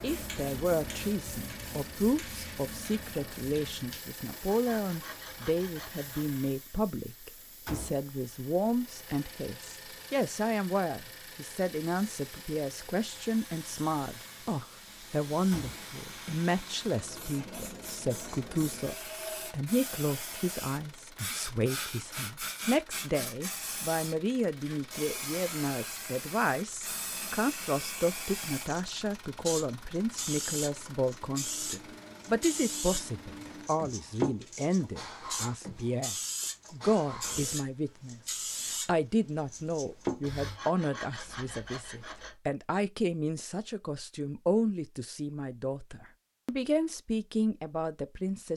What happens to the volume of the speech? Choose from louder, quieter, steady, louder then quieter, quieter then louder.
steady.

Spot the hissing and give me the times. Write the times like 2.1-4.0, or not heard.
0.0-40.6.